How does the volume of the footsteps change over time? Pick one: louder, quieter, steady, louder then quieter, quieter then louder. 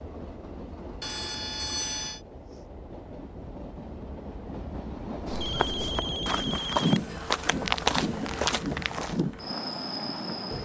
louder then quieter.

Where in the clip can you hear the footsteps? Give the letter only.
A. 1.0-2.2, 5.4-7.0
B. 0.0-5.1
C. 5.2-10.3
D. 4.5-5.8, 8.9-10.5
C.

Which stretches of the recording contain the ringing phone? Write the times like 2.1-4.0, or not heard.
1.0-2.2, 5.4-7.0.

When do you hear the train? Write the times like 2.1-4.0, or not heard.
0.0-10.5.